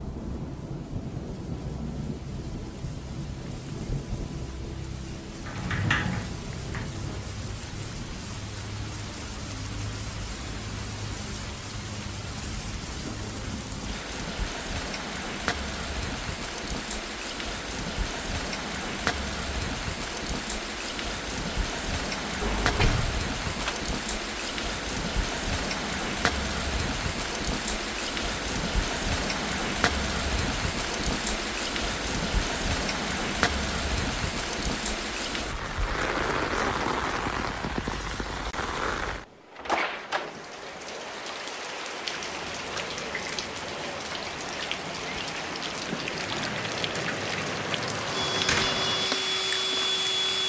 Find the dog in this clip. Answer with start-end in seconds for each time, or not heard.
not heard.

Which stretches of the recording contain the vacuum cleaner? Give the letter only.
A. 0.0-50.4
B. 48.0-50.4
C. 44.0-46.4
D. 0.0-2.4
B.